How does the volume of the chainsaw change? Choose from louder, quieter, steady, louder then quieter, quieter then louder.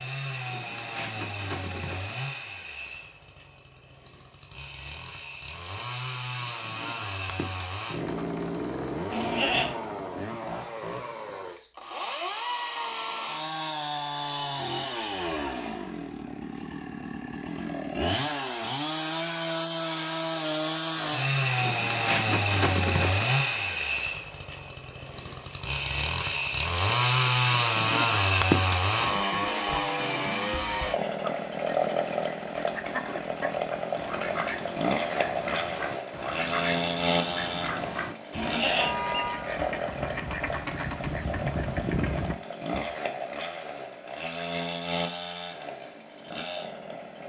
louder then quieter.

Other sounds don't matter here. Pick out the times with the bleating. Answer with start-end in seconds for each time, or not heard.
9.1-9.8, 38.3-39.0.